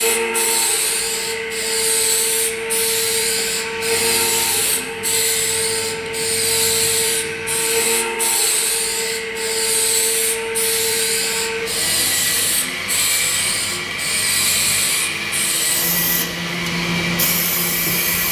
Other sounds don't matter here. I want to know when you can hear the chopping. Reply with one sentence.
You can't hear the chopping here.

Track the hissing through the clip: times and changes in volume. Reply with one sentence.
You can hear the hissing from 0.0 to 18.2 s, at a steady volume.